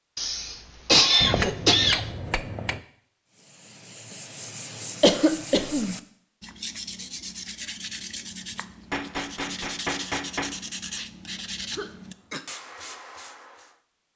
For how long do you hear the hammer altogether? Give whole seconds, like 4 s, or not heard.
3 s.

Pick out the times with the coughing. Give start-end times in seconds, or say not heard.
0.1-2.1, 5.0-6.0, 11.7-12.4.